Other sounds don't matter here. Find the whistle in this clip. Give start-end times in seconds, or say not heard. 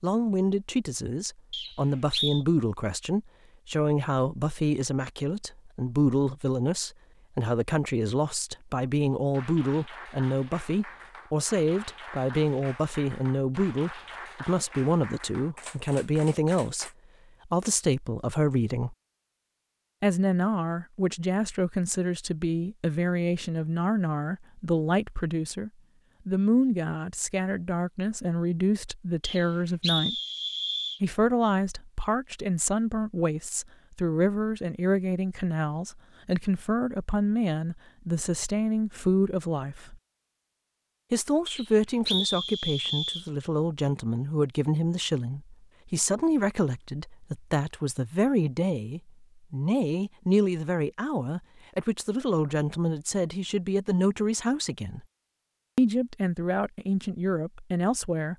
1.5-2.4, 29.2-31.0, 41.5-43.2.